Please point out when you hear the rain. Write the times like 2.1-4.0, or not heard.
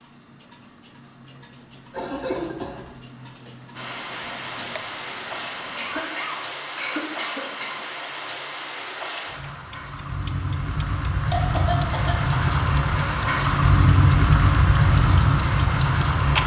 3.8-16.4.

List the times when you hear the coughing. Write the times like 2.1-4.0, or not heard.
1.9-2.9, 5.8-7.8, 11.3-12.3.